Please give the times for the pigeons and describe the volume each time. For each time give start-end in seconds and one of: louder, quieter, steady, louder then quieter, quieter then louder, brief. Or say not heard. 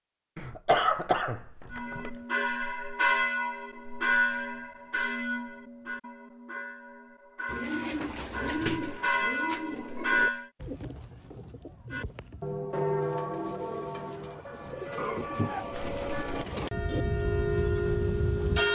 7.5-17.9 quieter then louder.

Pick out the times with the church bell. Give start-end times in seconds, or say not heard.
1.7-10.5, 11.9-18.7.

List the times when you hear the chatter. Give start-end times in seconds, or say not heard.
not heard.